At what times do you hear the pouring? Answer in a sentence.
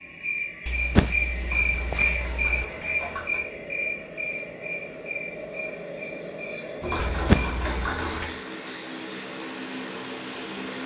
You can hear the pouring from 1.4 to 3.4 s and from 6.8 to 8.2 s.